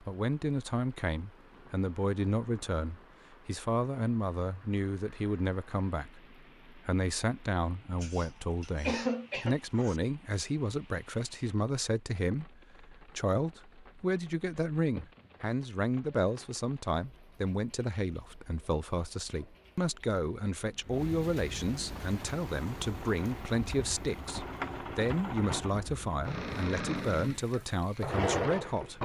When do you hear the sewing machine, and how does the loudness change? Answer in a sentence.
The sewing machine can be heard from 21.8 to 28.9 s, getting louder.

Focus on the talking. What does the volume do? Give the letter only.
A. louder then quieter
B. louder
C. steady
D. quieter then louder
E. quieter
C.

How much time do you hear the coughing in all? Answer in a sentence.
The coughing can be heard for 2 seconds in total.